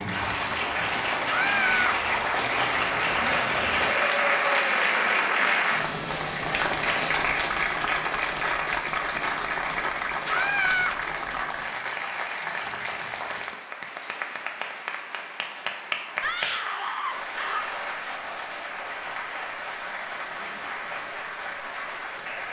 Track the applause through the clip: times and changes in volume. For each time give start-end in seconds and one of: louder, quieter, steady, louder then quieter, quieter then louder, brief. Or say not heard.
0.0-22.4 quieter.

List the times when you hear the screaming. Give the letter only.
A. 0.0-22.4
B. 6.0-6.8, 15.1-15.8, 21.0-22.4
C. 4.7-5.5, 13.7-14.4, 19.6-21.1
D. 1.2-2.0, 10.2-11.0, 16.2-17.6
D.